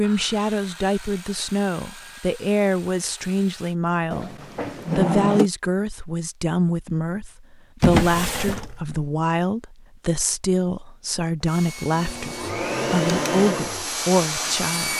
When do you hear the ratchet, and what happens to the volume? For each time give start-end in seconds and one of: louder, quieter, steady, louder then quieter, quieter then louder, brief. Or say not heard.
not heard.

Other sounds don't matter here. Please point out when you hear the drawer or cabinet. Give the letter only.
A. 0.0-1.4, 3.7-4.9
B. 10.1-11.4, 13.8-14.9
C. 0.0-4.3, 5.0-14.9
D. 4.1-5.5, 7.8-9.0
D.